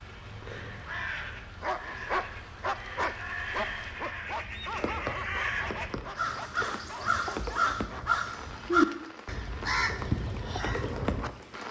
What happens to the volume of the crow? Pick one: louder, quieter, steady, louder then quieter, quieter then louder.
louder.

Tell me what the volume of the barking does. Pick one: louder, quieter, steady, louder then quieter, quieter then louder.
quieter.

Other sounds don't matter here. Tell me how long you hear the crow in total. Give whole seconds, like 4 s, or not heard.
11 s.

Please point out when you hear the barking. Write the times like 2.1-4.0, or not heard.
1.6-8.2.